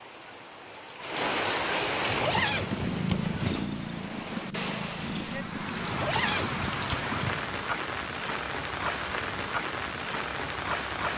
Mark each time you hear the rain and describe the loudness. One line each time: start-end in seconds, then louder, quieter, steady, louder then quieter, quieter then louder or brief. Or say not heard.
0.0-11.1 quieter then louder.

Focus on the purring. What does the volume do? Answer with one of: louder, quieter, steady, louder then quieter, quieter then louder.
quieter.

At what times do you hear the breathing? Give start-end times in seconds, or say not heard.
not heard.